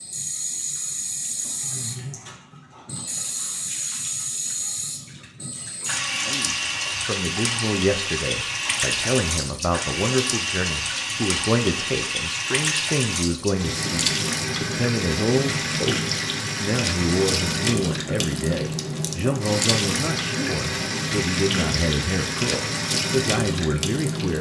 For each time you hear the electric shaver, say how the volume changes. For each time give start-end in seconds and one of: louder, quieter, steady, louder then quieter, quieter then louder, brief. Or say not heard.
not heard.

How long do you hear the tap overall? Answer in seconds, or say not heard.
24 s.